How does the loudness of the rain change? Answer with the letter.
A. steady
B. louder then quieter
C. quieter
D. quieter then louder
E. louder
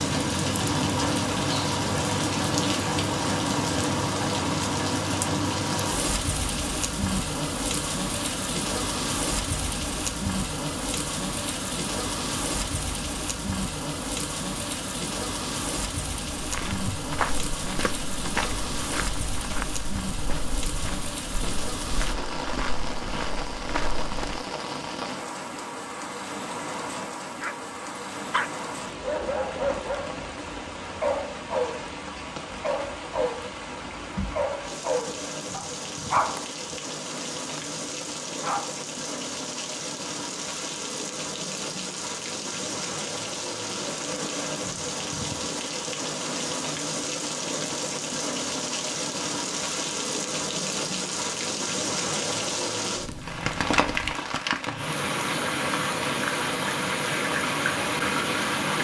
D.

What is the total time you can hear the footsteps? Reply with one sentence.
The footsteps can be heard for 8 seconds in total.